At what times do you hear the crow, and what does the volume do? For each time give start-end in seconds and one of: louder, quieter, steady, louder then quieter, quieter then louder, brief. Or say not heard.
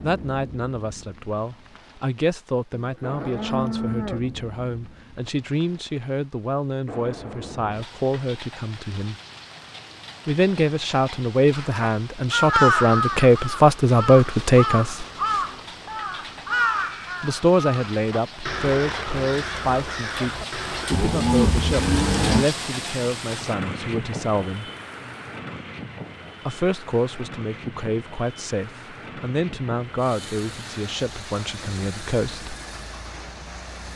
11.5-20.9 quieter.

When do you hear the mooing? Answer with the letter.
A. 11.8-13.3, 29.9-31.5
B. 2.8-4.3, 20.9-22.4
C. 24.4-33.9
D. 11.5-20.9
B.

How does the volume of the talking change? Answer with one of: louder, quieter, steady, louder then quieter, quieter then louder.
louder then quieter.